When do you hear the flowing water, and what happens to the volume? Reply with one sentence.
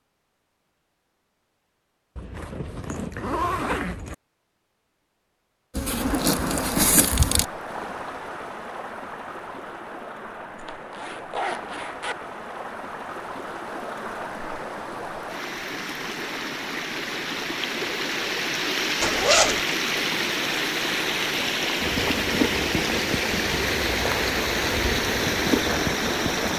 You can hear the flowing water from 5.8 to 26.5 s, getting louder.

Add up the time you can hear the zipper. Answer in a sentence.
You can hear the zipper for 4 seconds altogether.